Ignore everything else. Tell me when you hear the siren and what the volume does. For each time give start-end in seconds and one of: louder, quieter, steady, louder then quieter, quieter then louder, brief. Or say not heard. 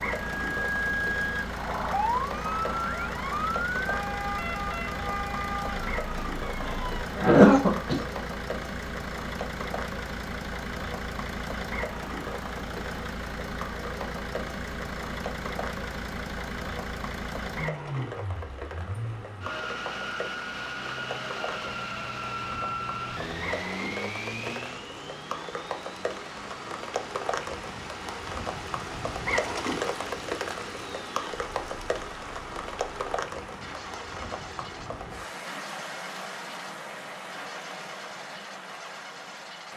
0.2-7.0 quieter.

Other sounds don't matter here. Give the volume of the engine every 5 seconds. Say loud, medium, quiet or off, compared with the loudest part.
loud, loud, loud, loud, loud, medium, medium, medium.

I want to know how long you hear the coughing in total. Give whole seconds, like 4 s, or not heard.
2 s.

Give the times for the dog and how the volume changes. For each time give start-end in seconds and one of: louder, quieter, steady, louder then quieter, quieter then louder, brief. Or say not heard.
not heard.